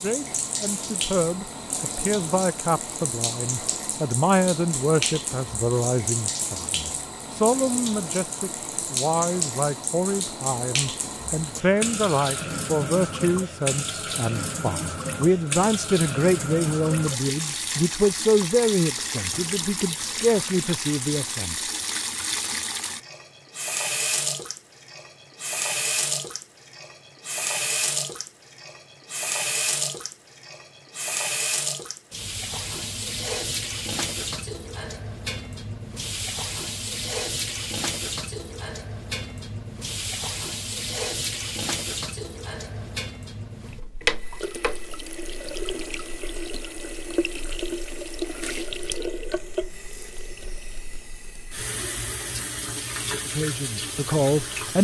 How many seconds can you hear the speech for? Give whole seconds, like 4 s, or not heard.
23 s.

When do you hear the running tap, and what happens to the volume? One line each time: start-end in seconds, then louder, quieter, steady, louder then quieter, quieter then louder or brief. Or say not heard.
0.0-54.7 steady.